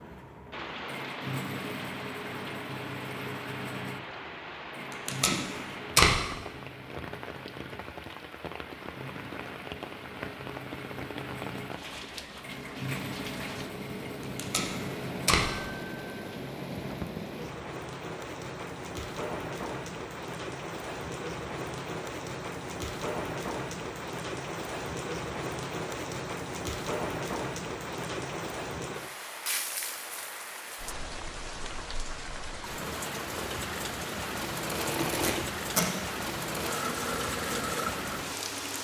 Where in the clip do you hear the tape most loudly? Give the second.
6 s.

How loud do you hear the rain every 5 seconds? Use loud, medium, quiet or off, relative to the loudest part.
medium, medium, medium, loud, loud, loud, loud, loud.